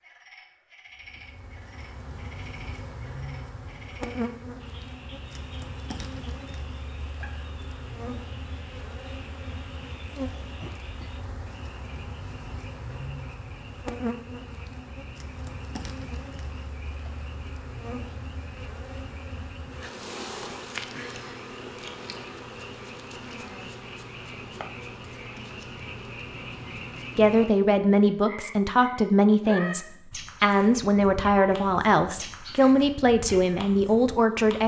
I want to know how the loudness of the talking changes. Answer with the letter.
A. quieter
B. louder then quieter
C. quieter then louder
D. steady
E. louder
D.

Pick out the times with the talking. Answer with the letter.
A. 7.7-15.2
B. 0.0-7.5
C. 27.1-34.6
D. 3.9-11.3
C.